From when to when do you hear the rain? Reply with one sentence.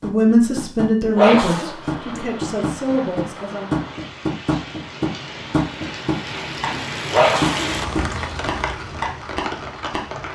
The rain can be heard from 1.5 to 10.3 s.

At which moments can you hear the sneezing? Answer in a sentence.
You can hear the sneezing from 1.1 to 2.2 s and from 7.1 to 8.2 s.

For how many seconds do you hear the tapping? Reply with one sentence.
You can hear the tapping for 10 seconds altogether.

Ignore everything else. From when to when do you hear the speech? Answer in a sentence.
You can hear the speech from 0.0 to 3.8 s.